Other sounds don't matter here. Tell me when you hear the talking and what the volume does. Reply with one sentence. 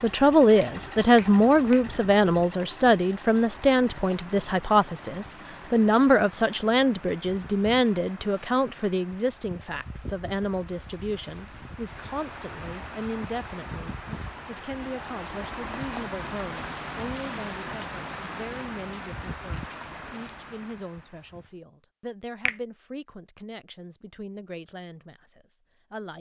The talking can be heard from 0.0 to 26.1 s, getting quieter.